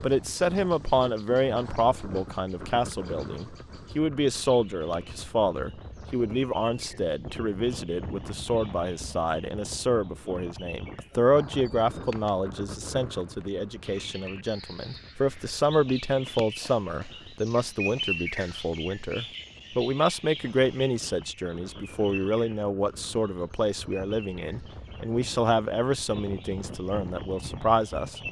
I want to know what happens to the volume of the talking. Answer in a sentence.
The loudness of the talking stays about the same.